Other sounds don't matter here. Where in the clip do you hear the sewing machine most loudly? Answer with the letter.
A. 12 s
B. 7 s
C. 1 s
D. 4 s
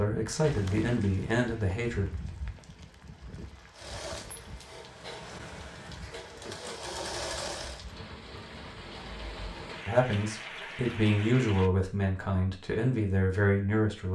B.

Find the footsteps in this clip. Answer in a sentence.
You can't hear the footsteps here.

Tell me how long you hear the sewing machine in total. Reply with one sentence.
You can hear the sewing machine for 4 seconds altogether.